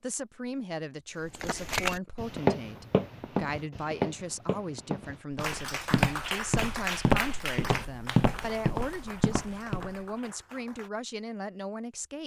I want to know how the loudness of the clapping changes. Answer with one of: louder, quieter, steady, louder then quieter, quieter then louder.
quieter.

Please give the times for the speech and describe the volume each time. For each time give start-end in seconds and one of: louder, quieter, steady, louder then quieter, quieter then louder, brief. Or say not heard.
0.0-12.2 steady.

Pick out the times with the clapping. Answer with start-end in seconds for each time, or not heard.
5.3-10.9.